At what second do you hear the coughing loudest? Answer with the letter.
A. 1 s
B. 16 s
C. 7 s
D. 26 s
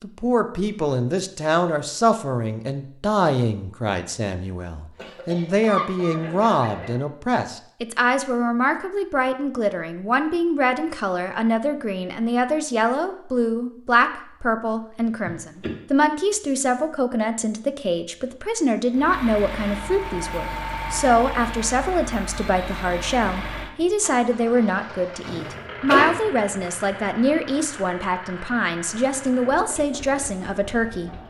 D.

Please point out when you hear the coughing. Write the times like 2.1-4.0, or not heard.
5.0-7.0, 15.2-15.8, 25.2-26.1.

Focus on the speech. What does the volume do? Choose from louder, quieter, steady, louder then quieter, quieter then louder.
steady.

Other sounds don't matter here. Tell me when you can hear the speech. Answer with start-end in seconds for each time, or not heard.
0.0-31.1.